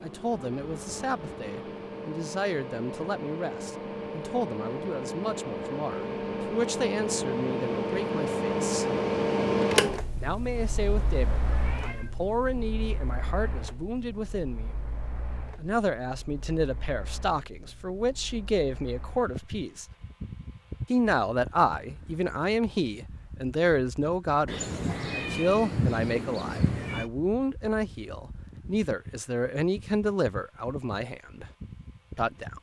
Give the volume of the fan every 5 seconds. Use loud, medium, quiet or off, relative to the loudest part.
medium, loud, quiet, quiet, quiet, quiet, quiet.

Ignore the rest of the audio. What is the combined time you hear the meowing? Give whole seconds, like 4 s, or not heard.
4 s.